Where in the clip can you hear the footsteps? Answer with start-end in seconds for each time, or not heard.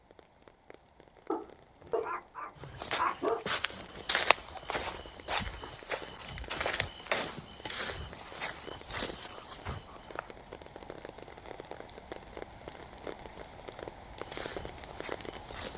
2.6-10.3, 14.2-15.7.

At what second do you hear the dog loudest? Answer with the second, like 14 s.
3 s.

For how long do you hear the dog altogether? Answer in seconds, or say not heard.
2 s.